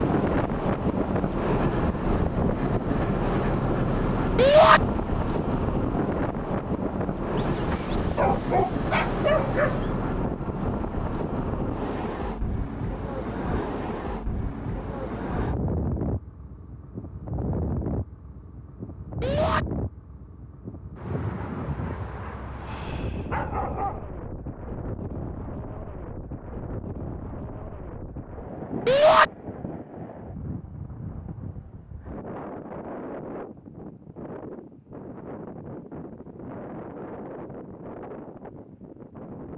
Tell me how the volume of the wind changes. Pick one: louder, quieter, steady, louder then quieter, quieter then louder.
quieter.